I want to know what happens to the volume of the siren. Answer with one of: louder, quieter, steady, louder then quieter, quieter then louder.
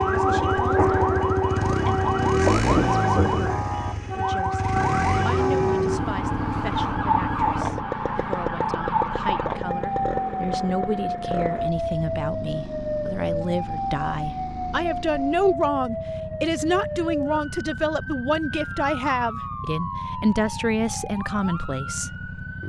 quieter.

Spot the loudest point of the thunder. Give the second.
3 s.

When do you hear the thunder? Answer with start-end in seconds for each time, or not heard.
0.2-3.5.